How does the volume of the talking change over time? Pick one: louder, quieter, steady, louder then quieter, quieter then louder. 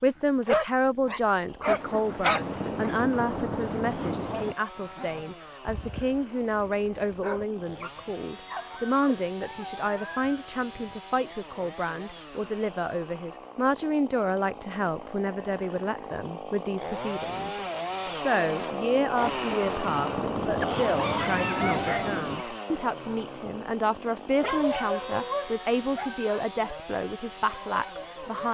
steady.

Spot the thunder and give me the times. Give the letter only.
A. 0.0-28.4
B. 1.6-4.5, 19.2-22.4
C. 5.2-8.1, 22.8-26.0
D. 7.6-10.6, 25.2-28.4
B.